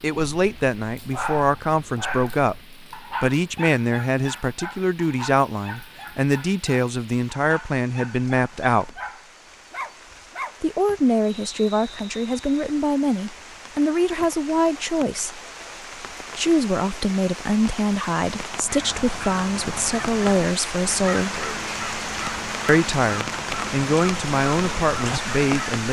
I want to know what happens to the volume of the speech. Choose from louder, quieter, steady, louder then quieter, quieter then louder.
steady.